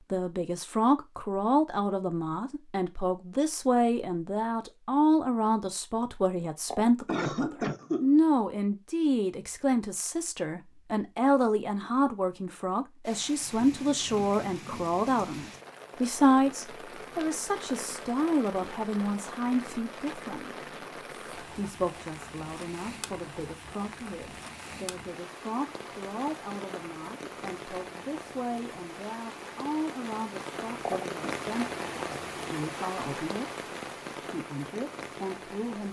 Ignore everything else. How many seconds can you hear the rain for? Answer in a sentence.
You can hear the rain for 23 seconds altogether.